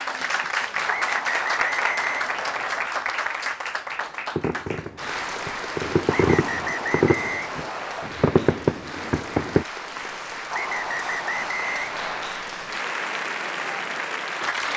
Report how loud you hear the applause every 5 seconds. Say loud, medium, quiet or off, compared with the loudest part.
loud, medium, loud.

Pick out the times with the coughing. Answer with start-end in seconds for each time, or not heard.
not heard.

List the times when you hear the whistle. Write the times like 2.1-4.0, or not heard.
0.8-2.9, 6.0-8.1, 10.5-12.4.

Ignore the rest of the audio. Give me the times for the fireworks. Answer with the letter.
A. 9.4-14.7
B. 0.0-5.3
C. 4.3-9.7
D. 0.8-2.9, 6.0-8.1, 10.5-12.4
C.